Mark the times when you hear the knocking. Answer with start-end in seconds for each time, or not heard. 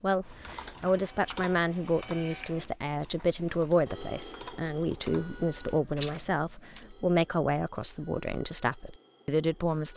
not heard.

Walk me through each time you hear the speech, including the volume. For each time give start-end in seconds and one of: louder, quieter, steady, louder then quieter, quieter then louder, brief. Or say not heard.
0.0-9.9 steady.